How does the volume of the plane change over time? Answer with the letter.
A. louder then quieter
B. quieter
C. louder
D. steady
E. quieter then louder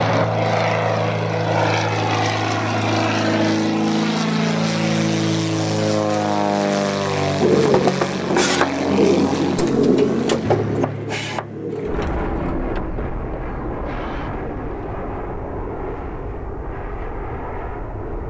B.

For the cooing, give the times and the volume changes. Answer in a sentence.
The cooing can be heard from 7.3 to 14.9 s, getting quieter.